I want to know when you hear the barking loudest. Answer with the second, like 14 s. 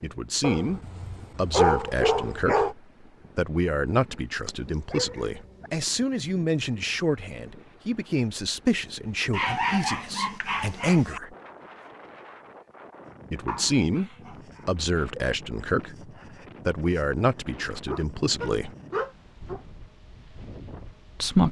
2 s.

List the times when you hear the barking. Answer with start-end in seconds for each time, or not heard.
0.4-2.8, 4.5-5.7, 9.3-11.2, 13.4-14.7, 17.9-19.6.